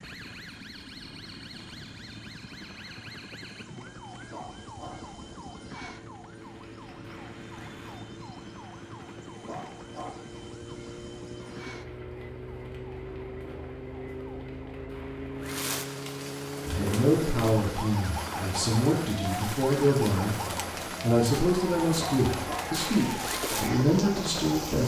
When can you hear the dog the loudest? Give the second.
22 s.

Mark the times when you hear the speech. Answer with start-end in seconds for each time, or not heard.
16.6-20.4, 21.0-24.8.